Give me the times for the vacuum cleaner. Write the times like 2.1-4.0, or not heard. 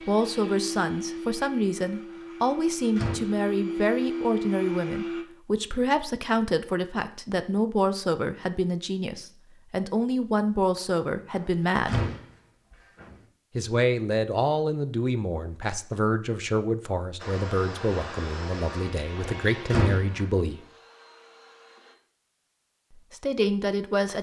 0.0-5.2, 17.1-21.9.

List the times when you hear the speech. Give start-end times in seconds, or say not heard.
0.1-12.1, 13.6-20.6, 22.9-24.1.